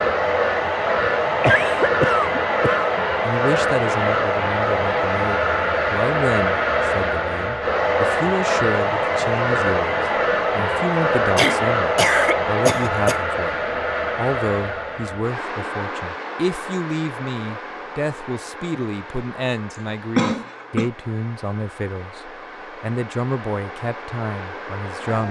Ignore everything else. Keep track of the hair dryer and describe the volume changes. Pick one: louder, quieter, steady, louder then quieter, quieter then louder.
quieter.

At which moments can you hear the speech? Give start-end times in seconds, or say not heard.
3.2-13.6, 14.2-25.2.